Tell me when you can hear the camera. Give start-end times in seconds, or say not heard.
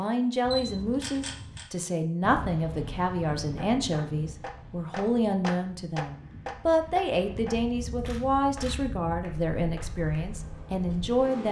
0.5-1.6, 8.1-8.8.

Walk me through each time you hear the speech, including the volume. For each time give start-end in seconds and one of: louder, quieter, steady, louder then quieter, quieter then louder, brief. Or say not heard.
0.0-11.4 steady.